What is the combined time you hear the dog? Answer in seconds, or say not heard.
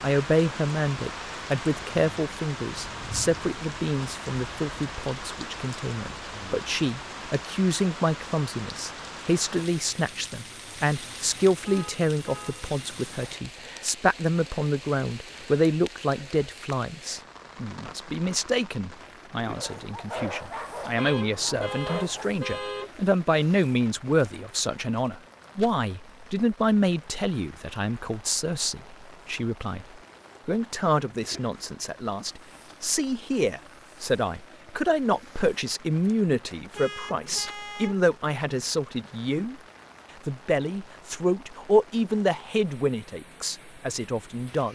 3 s.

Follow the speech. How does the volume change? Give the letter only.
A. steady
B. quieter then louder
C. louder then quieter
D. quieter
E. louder
A.